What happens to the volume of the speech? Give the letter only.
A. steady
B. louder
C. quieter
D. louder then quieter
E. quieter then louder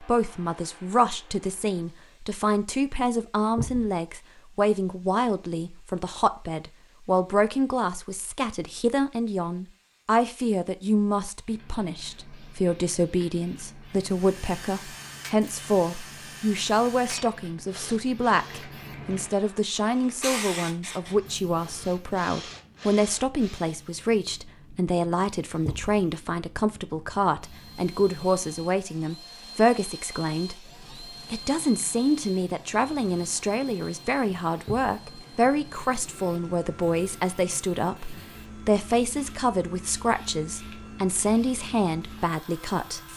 A.